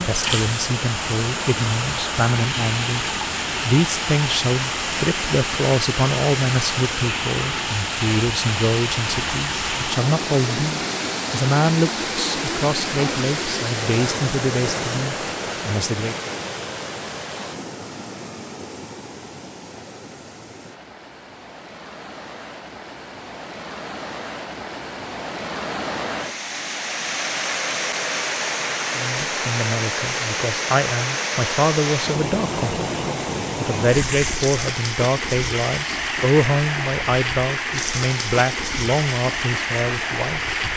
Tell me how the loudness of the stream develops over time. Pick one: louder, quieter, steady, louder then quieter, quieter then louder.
quieter then louder.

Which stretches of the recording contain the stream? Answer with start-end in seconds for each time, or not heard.
0.0-40.7.